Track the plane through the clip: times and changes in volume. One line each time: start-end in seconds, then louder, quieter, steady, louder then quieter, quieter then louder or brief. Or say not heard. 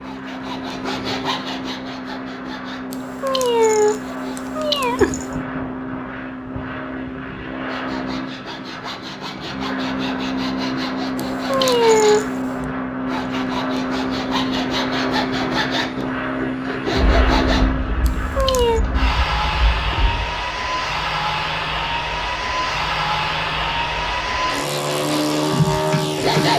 0.0-26.5 louder.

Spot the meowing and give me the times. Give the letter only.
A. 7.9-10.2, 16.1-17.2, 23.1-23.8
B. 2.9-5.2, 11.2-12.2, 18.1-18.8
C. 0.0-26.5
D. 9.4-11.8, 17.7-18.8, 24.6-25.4
B.